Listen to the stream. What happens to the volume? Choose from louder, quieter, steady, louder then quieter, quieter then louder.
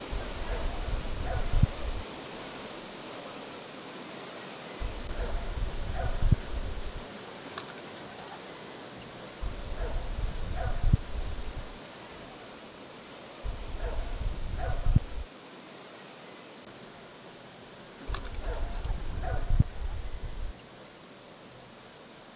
quieter.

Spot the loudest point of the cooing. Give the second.
8 s.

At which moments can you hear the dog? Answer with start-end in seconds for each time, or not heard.
0.2-1.9, 4.8-7.0, 9.4-11.8, 13.4-15.2, 18.1-20.6.